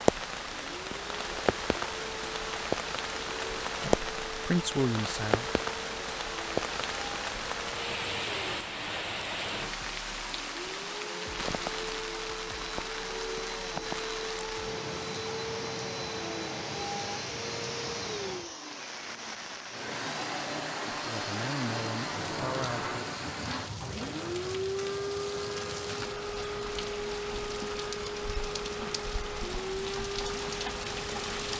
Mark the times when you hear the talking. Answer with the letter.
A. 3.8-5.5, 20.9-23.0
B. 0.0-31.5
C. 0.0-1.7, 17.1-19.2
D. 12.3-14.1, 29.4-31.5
A.